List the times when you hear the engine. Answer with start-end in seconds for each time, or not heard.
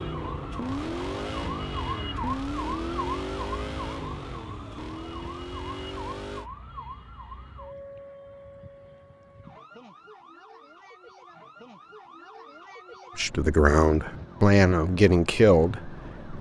0.0-6.5.